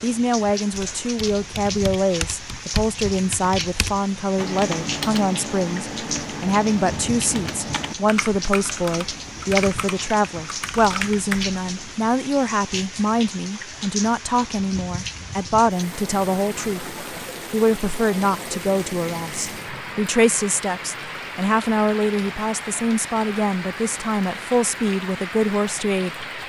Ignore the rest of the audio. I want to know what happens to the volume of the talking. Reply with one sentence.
The loudness of the talking stays about the same.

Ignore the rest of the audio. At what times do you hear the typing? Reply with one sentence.
The typing can be heard from 0.7 to 12.0 s.